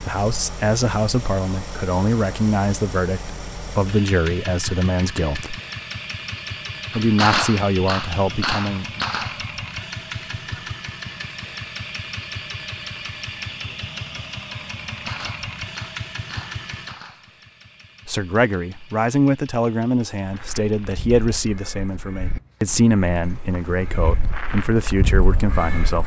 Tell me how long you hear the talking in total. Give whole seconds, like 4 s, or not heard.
16 s.